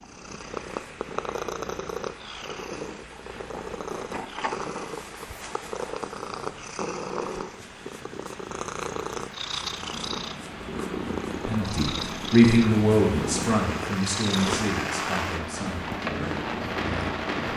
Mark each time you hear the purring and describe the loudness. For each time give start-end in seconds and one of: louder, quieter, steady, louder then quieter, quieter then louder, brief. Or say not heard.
0.0-17.5 steady.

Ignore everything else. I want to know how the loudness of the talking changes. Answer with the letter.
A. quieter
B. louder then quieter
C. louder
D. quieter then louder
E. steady
A.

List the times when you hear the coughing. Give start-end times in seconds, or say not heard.
not heard.